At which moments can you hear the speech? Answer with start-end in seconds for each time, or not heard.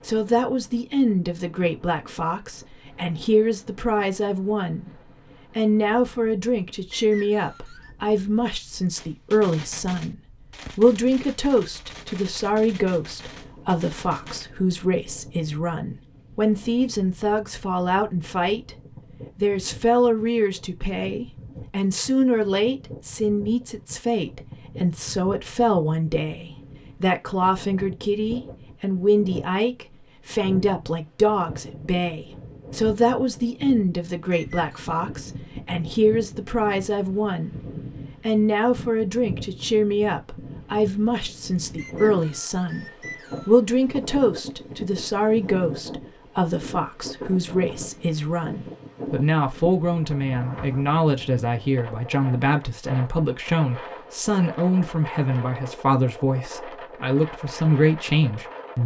0.1-4.9, 5.5-10.2, 10.8-37.6, 38.2-42.9, 43.5-58.8.